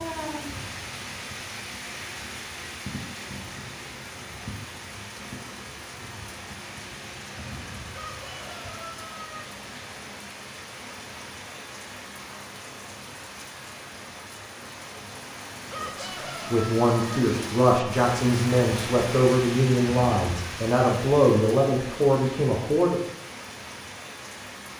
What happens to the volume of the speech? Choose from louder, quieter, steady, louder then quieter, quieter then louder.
steady.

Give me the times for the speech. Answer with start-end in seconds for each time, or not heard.
15.8-23.0.